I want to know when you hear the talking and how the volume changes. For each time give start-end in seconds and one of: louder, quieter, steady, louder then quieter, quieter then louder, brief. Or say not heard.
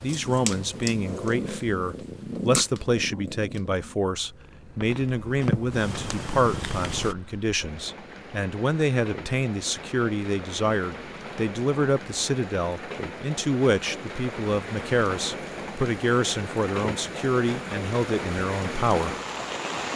0.0-19.1 steady.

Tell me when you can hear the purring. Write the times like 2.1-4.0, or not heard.
0.0-7.2.